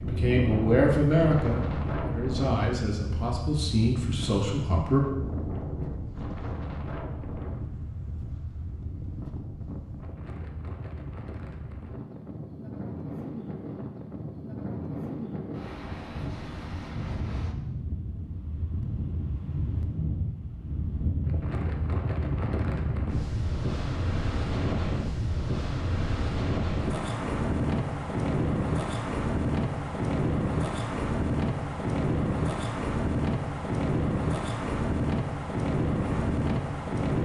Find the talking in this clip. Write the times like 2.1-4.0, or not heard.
0.0-5.0.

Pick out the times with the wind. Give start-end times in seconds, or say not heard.
0.0-37.1.